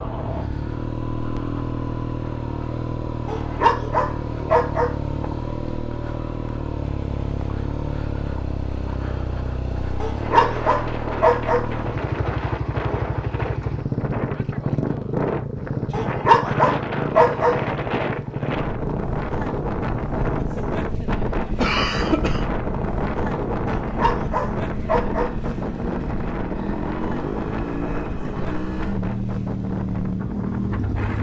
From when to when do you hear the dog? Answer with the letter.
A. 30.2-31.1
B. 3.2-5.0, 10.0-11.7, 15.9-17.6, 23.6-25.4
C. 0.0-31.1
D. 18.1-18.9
B.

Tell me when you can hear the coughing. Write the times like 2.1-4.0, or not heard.
21.6-22.4.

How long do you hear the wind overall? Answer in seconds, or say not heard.
21 s.